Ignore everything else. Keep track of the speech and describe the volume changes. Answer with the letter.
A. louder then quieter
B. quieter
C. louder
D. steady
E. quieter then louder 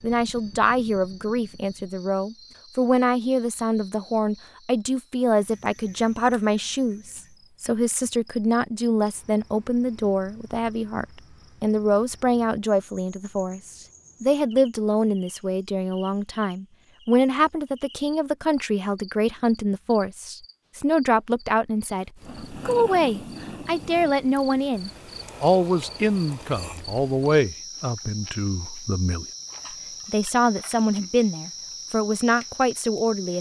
D.